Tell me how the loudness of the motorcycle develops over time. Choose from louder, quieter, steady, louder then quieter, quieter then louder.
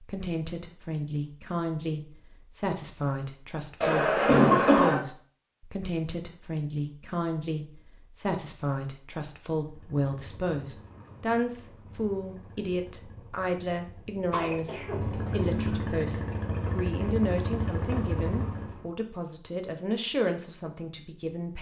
louder.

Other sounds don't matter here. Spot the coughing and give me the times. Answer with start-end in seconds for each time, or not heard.
3.8-5.0, 14.3-15.8.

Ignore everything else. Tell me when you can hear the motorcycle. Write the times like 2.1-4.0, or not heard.
9.6-18.9.